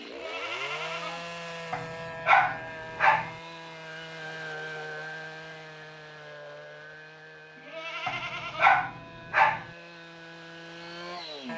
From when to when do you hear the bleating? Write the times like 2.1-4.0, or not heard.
0.1-1.3, 7.5-8.8.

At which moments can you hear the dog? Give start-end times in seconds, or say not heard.
1.7-3.3, 8.1-9.7.